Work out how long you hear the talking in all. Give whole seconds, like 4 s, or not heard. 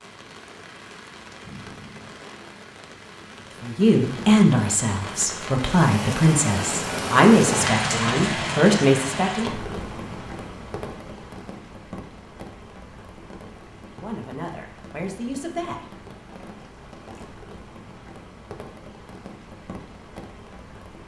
8 s.